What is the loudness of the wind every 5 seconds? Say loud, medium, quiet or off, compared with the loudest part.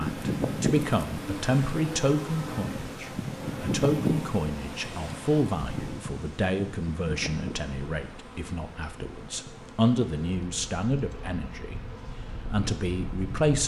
loud, medium, medium.